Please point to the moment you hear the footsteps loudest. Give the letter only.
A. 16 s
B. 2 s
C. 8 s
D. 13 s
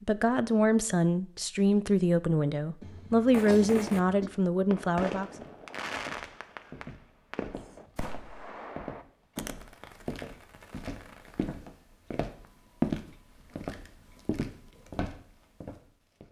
D.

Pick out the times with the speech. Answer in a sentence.
The speech can be heard from 0.0 to 5.2 s.